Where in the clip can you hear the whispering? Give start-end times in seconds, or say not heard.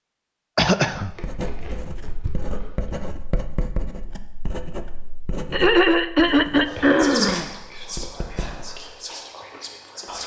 6.7-10.2.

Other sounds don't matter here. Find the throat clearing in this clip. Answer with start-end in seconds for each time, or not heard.
0.6-1.1, 5.5-7.5.